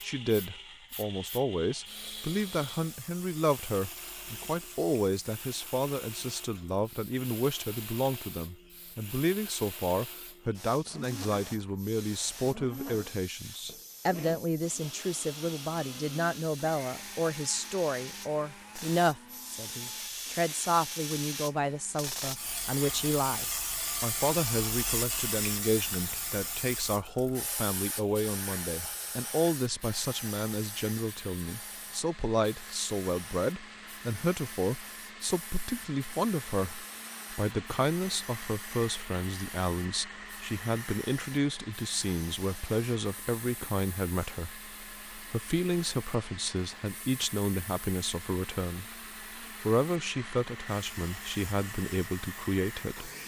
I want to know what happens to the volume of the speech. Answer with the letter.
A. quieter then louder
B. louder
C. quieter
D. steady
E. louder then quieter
D.